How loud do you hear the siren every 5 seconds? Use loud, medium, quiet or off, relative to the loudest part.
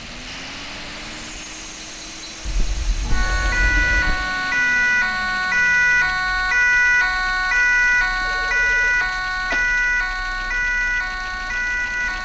loud, loud, medium.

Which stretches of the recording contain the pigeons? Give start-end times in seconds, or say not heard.
not heard.